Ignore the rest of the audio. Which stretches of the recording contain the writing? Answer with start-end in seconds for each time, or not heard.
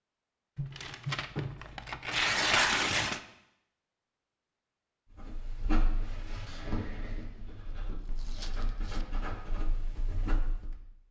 5.2-10.8.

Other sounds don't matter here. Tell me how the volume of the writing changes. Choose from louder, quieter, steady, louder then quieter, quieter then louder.
quieter then louder.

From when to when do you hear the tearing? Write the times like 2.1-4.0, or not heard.
0.6-3.2, 8.2-9.1.